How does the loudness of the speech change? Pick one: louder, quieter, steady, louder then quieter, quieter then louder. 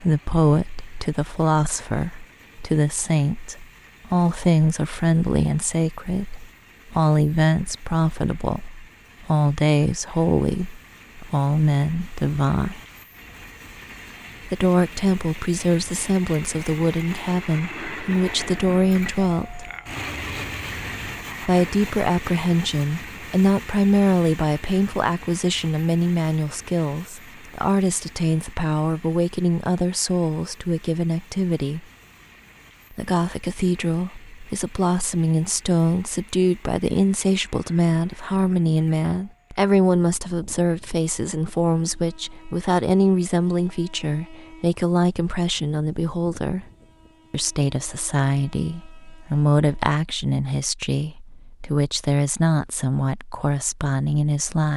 steady.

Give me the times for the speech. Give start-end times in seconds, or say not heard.
0.0-12.8, 14.5-19.6, 21.4-31.9, 32.9-46.7, 47.3-54.7.